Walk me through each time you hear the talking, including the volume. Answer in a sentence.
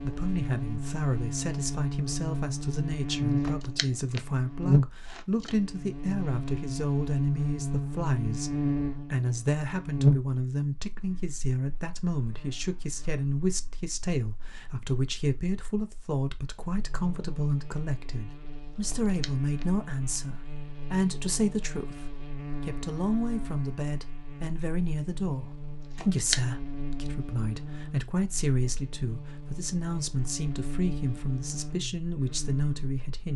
The talking can be heard from 0.0 to 33.3 s, at a steady volume.